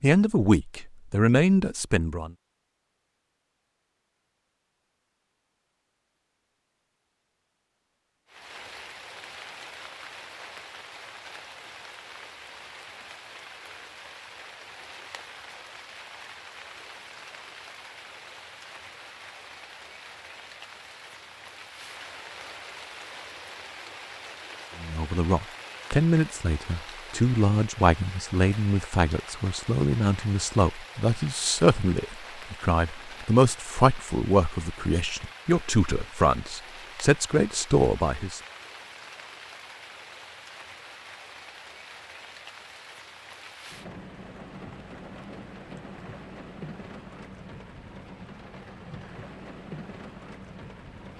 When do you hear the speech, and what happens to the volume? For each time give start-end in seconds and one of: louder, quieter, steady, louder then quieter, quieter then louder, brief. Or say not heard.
0.0-2.3 brief
24.8-38.4 steady.